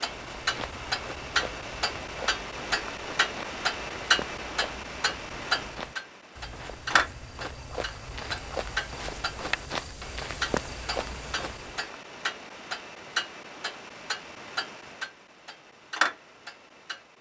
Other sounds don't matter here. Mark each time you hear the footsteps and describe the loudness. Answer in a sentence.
You can hear the footsteps from 0.1 to 11.9 s, getting louder.